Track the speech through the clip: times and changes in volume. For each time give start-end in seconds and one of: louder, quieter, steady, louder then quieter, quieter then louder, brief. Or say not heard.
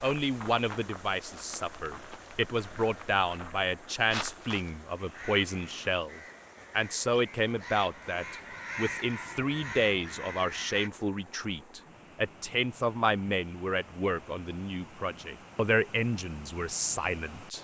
0.0-17.5 steady.